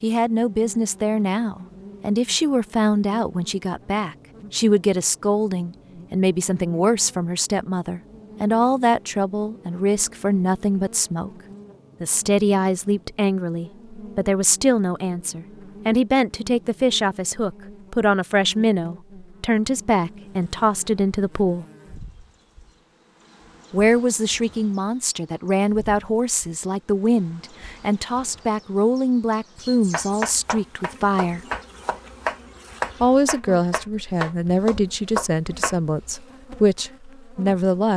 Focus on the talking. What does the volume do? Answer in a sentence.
The loudness of the talking stays about the same.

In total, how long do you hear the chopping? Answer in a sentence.
You can hear the chopping for 6 seconds altogether.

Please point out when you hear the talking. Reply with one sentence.
The talking can be heard from 0.0 to 11.3 s, from 12.0 to 21.6 s, from 23.7 to 31.4 s and from 33.0 to 37.9 s.